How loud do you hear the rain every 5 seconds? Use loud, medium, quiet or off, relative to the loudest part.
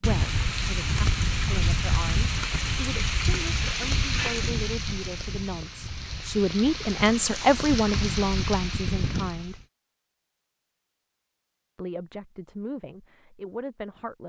loud, medium, off.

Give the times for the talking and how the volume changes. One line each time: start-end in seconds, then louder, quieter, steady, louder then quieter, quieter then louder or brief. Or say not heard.
0.0-9.6 louder
11.8-14.2 brief.